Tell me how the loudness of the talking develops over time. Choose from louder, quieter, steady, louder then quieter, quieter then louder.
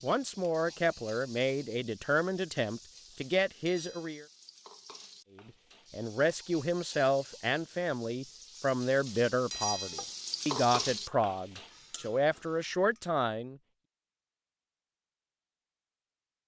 steady.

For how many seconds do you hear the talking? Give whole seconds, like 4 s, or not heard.
12 s.